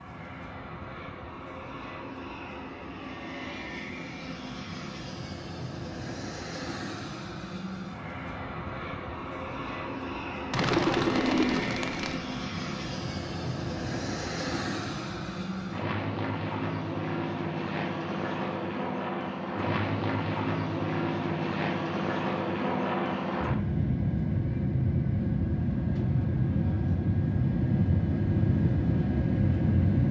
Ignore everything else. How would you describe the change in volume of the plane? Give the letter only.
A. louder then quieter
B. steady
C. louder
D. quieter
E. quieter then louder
C.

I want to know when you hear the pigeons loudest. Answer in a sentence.
The volume of the pigeons peaks at 11 seconds.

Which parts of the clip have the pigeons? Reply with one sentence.
You can hear the pigeons from 10.5 to 12.2 s.